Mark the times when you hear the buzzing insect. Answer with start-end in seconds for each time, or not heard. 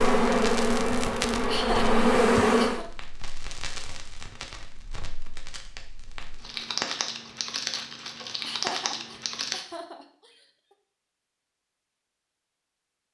0.0-2.8.